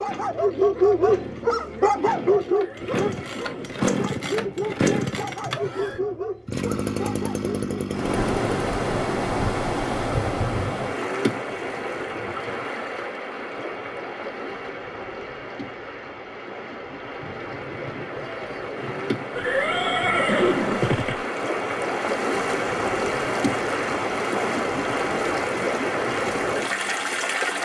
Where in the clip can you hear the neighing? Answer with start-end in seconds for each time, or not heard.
2.5-3.8, 19.4-21.2.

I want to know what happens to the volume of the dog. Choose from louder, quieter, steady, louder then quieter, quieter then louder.
quieter.